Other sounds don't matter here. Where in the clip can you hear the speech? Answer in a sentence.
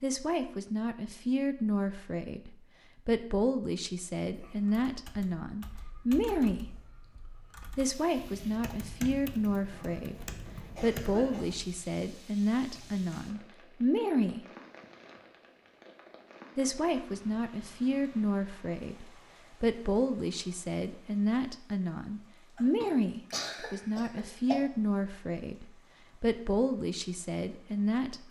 The speech can be heard from 0.0 to 6.7 s, from 7.8 to 14.4 s and from 16.6 to 28.2 s.